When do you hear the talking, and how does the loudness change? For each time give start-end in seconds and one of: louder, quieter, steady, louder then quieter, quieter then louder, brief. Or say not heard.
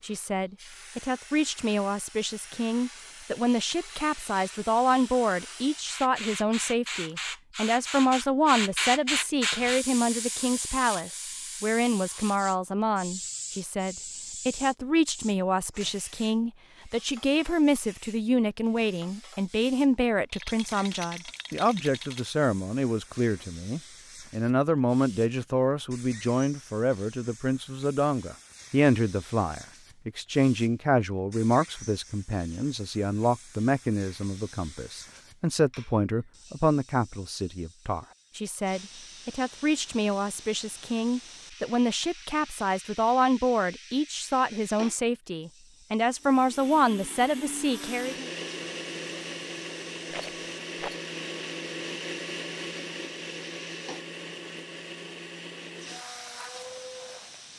0.0-48.3 steady.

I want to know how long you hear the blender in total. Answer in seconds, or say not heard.
11 s.